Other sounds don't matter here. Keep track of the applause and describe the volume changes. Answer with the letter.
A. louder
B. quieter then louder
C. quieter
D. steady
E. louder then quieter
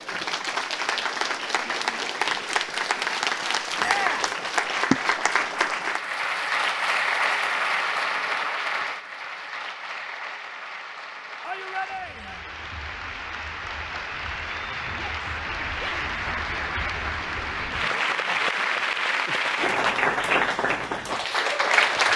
B.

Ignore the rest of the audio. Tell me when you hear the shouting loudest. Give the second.
4 s.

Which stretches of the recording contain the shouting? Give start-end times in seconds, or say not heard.
3.8-4.2, 11.4-12.4, 14.9-16.1.